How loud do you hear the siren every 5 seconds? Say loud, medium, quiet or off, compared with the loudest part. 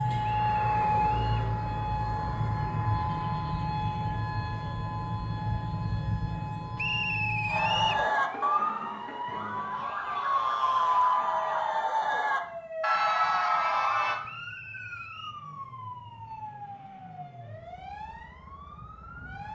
loud, medium, medium, quiet.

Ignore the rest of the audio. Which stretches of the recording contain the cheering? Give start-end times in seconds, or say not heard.
7.5-14.2.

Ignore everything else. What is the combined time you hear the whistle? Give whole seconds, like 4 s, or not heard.
4 s.